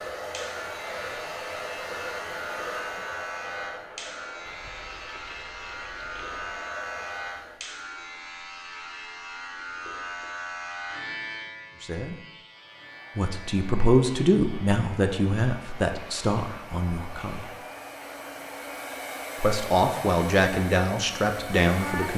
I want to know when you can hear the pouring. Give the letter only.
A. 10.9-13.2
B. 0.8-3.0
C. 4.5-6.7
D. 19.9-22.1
C.